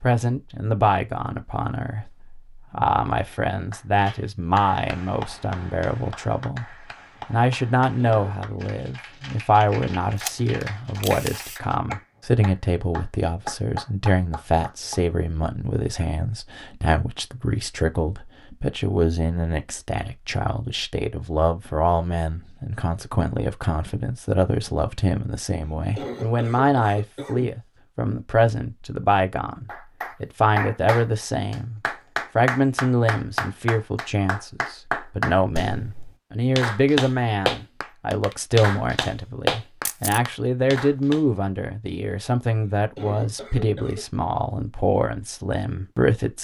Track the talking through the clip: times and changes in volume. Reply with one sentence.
You can hear the talking from 0.0 to 46.3 s, at a steady volume.